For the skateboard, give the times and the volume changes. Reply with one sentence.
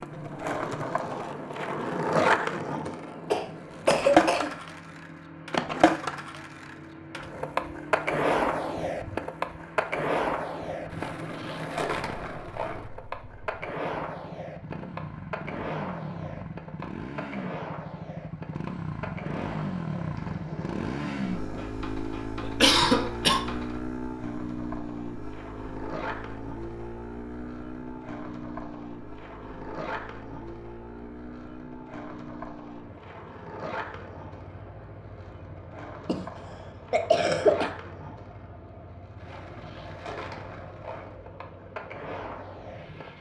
The skateboard can be heard from 0.0 to 43.1 s, getting quieter.